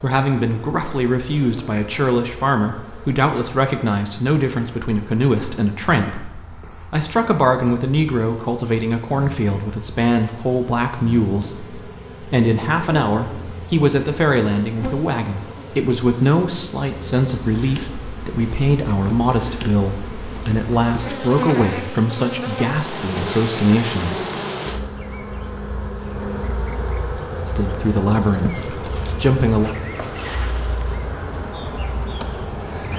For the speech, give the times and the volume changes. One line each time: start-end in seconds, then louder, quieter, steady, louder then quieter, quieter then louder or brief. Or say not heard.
0.0-24.2 steady
27.4-29.7 brief.